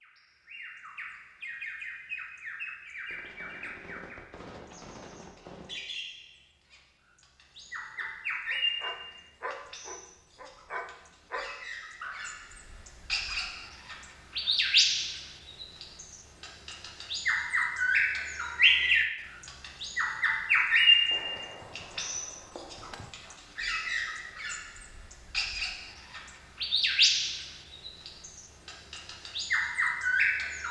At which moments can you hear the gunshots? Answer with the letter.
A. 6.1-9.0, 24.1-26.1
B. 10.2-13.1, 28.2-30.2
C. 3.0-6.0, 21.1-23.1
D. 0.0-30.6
C.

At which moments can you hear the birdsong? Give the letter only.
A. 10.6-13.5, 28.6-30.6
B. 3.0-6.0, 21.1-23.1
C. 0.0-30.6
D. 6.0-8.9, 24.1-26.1
C.